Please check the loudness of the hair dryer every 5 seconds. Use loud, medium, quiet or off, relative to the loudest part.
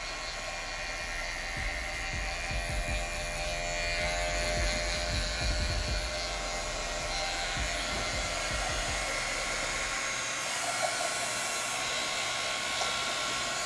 medium, loud, loud.